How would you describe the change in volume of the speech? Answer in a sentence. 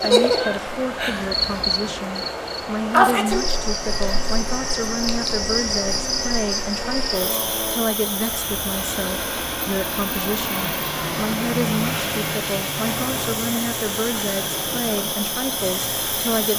The volume of the speech stays about the same.